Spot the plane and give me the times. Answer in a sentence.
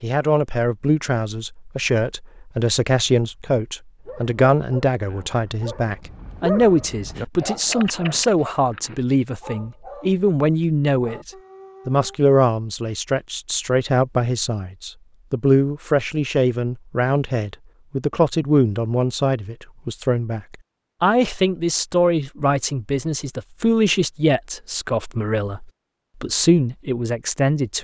You can't hear the plane here.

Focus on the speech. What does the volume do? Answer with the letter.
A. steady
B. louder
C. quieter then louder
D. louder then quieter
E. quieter
A.